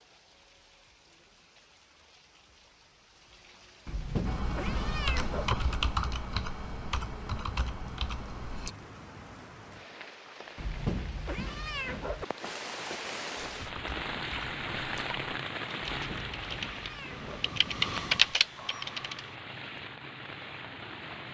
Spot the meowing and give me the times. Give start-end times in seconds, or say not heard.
3.9-5.5, 10.6-12.2, 15.9-17.5.